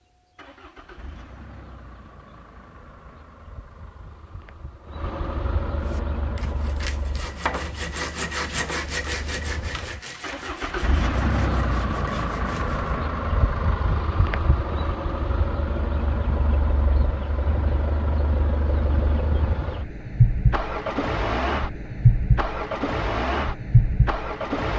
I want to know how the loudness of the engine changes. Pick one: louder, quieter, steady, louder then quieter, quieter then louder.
louder.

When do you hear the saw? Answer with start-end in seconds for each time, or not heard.
5.8-13.0.